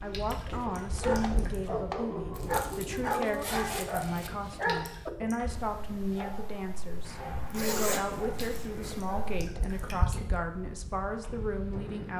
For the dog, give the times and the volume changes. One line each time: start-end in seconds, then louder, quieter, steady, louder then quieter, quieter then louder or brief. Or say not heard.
0.0-10.0 quieter.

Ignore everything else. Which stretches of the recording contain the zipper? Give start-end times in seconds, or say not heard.
2.4-4.3, 7.0-9.0.